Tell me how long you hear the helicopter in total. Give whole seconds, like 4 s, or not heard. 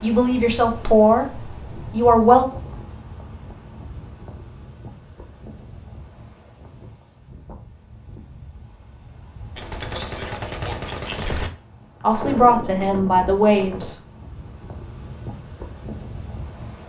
not heard.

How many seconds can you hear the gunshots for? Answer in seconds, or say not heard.
2 s.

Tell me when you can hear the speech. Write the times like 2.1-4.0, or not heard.
0.0-2.5, 12.0-13.9.